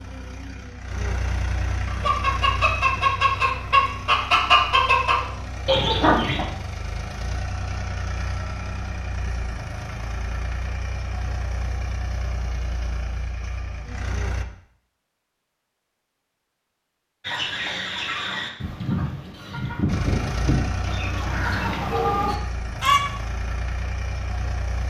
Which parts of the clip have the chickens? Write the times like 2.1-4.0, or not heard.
1.9-6.5, 17.2-23.0.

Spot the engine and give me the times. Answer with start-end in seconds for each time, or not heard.
0.0-14.4, 19.9-24.8.